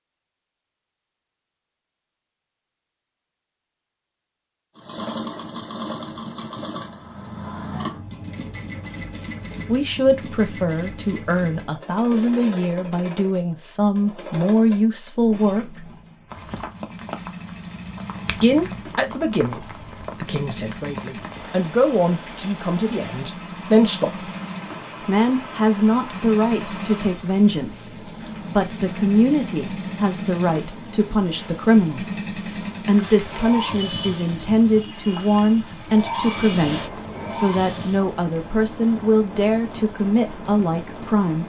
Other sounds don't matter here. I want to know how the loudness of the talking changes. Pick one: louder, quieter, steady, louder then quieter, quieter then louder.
steady.